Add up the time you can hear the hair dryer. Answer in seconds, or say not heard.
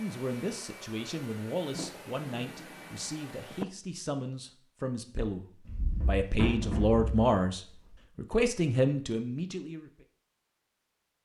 4 s.